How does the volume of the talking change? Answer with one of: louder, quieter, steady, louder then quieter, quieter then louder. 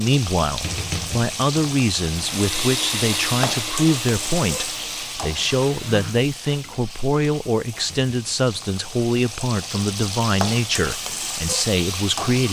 steady.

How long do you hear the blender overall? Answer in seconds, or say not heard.
5 s.